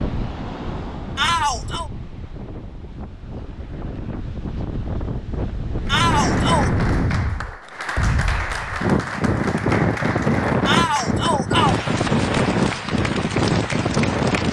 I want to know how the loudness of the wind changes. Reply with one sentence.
The volume of the wind goes up.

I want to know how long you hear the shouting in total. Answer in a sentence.
You can hear the shouting for 3 seconds altogether.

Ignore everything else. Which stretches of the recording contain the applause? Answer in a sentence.
You can hear the applause from 5.8 to 14.4 s.